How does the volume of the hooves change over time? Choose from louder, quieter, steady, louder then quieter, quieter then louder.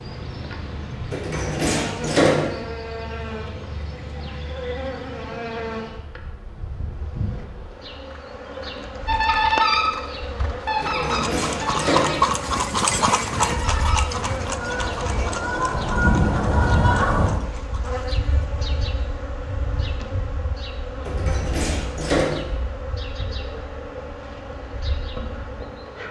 louder then quieter.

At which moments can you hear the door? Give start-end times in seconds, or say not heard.
1.1-2.5, 10.8-12.2, 21.1-22.4.